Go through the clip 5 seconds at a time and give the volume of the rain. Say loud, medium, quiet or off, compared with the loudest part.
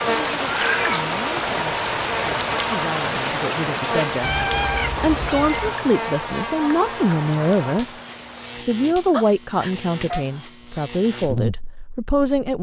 loud, medium, off.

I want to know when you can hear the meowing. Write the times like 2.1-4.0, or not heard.
0.5-1.6, 4.2-5.8, 9.1-10.2.